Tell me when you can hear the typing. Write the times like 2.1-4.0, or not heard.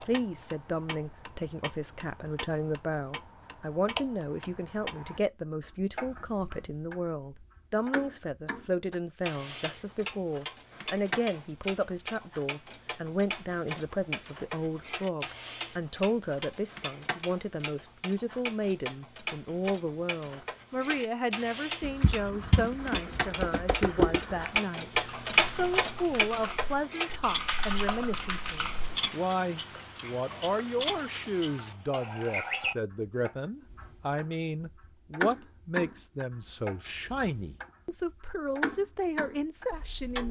21.8-29.0.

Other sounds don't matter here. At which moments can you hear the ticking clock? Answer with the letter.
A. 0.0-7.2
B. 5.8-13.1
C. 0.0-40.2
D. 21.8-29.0
C.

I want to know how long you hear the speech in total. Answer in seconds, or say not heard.
40 s.